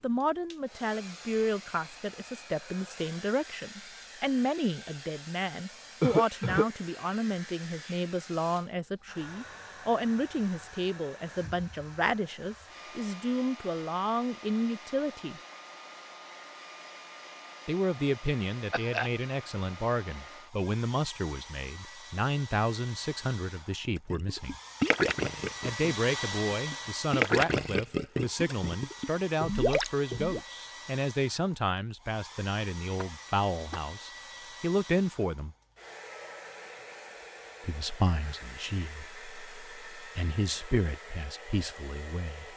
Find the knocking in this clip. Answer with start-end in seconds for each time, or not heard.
not heard.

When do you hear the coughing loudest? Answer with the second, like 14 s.
6 s.